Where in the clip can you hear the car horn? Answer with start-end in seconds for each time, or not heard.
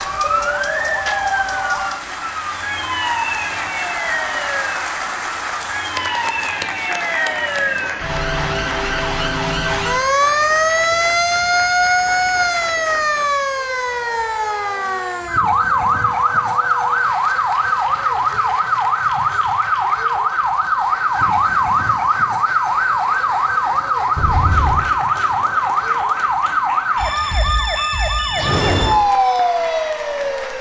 24.1-24.9.